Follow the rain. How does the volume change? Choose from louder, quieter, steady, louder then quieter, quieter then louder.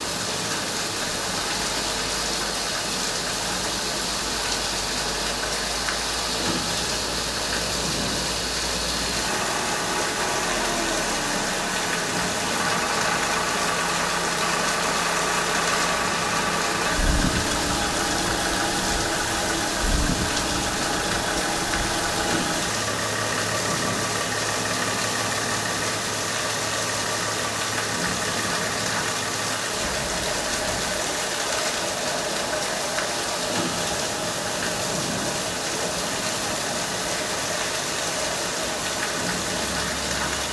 steady.